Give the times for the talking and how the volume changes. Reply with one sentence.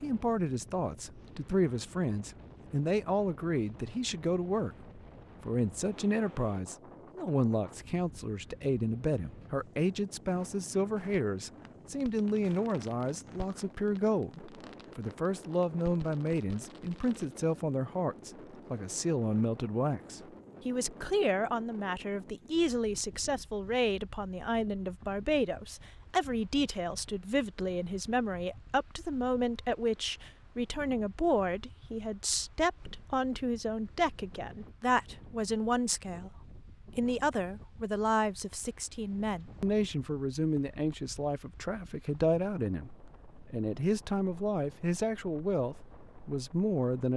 You can hear the talking from 0.0 to 36.3 s, at a steady volume; and from 37.0 to 47.1 s, at a steady volume.